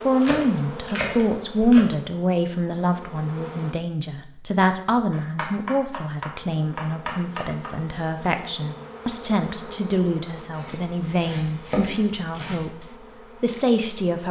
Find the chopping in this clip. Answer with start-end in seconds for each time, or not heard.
0.2-1.9, 5.1-7.8, 10.5-12.7.